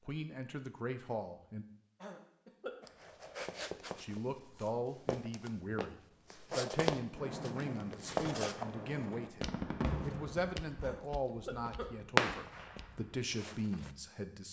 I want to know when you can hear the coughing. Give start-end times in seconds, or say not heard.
2.0-2.9, 10.8-11.9.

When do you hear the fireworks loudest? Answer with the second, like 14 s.
12 s.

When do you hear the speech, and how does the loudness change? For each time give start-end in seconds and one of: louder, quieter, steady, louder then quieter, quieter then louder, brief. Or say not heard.
0.1-1.6 brief
4.0-14.4 steady.